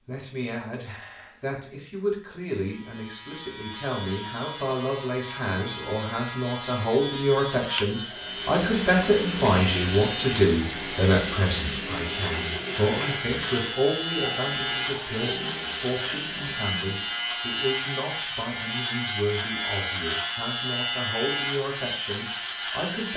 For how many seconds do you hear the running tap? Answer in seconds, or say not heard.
9 s.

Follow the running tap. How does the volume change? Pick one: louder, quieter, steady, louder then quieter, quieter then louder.
quieter.